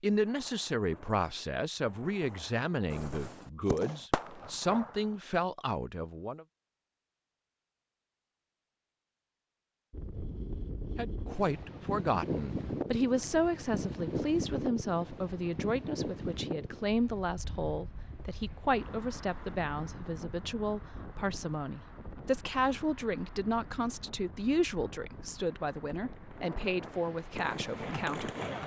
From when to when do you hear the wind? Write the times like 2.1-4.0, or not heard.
9.9-28.6.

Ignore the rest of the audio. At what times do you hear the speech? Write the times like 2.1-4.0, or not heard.
0.0-6.5, 10.9-28.3.